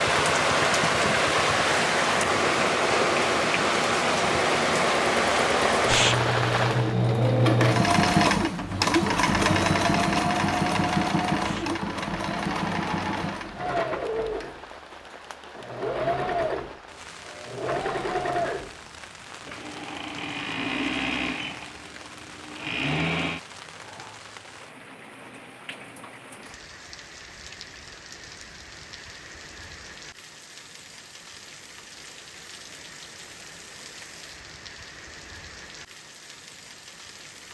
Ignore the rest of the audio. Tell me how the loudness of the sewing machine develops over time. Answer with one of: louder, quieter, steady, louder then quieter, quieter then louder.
louder then quieter.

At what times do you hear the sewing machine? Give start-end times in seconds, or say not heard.
0.0-24.1.